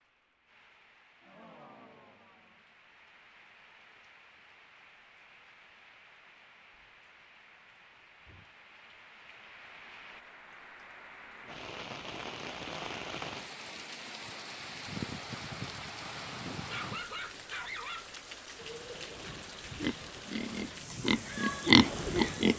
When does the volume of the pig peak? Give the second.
22 s.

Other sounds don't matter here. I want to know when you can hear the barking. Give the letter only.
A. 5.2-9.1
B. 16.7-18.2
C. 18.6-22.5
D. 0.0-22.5
B.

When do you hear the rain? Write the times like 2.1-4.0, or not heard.
0.0-22.5.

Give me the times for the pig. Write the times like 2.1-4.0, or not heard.
18.6-22.5.